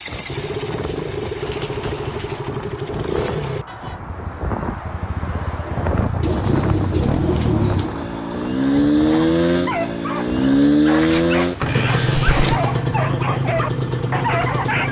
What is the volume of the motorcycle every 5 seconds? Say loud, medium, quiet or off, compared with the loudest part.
medium, loud, loud.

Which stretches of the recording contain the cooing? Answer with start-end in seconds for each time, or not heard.
0.3-2.5, 6.2-8.0, 11.0-12.6.